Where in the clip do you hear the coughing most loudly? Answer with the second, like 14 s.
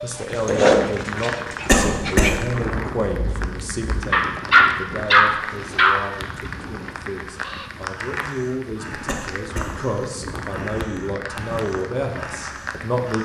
2 s.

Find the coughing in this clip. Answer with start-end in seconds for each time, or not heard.
1.6-2.4, 9.1-9.8.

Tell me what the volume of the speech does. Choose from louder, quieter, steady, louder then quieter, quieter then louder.
quieter then louder.